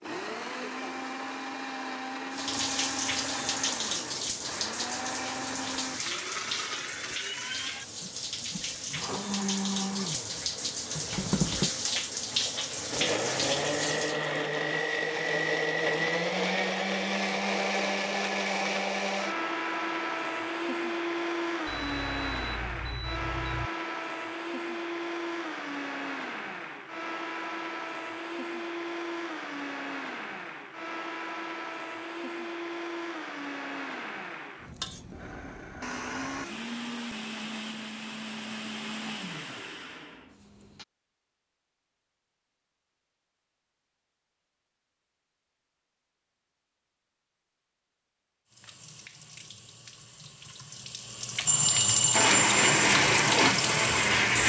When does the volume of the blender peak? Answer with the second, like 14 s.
53 s.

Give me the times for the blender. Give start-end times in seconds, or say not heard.
0.0-40.9, 52.1-54.4.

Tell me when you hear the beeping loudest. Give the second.
52 s.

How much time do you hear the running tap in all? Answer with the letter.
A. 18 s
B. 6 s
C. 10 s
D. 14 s
A.